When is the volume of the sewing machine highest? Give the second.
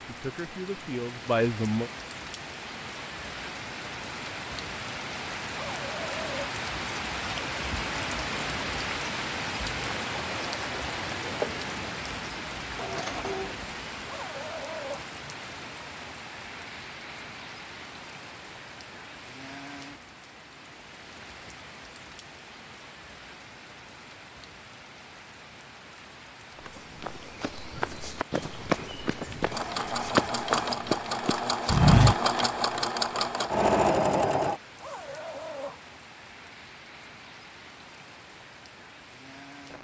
34 s.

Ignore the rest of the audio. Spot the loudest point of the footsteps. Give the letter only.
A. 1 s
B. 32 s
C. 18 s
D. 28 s
B.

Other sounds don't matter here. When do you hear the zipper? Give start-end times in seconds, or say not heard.
5.7-6.5, 14.0-15.1, 34.7-35.8.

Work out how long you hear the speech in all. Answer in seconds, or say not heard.
2 s.